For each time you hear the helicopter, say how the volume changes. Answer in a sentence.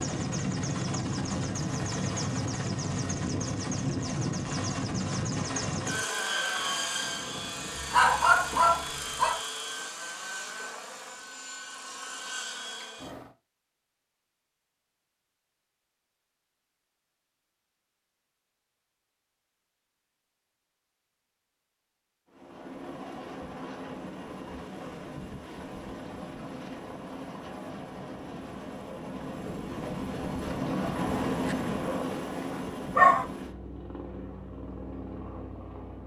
The helicopter can be heard from 0.0 to 13.3 s, getting quieter; and from 22.3 to 36.0 s, getting louder then quieter.